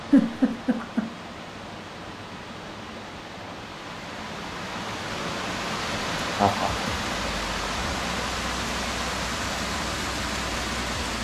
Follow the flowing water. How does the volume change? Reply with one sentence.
The loudness of the flowing water goes up.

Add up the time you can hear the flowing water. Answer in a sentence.
You can hear the flowing water for 11 seconds altogether.